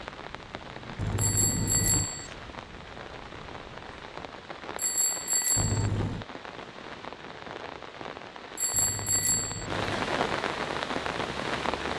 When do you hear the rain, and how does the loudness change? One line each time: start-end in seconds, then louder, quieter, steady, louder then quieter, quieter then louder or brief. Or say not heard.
0.0-11.9 louder.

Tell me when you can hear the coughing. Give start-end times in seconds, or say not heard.
0.9-2.1, 5.5-6.2, 8.7-10.2.